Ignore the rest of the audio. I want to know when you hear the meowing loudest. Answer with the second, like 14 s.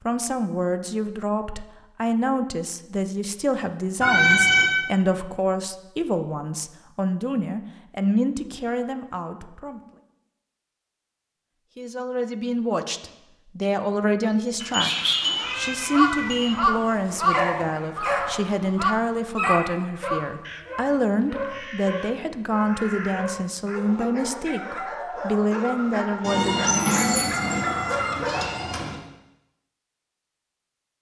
4 s.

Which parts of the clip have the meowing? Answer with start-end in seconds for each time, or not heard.
4.0-4.7, 14.6-16.5, 26.2-28.9.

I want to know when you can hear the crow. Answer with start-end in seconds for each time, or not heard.
15.4-23.8.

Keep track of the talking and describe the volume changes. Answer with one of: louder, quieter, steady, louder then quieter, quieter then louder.
steady.